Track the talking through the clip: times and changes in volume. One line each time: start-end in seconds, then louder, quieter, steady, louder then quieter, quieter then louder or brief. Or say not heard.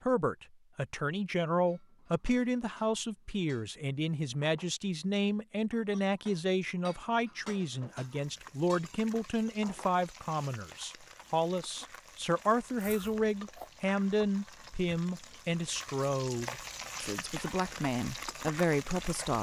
0.0-19.3 steady.